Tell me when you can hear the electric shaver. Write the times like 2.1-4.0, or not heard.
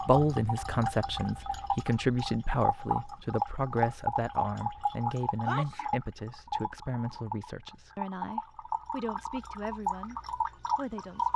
not heard.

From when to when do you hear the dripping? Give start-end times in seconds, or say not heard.
0.0-11.3.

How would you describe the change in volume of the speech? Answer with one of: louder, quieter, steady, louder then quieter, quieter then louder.
quieter.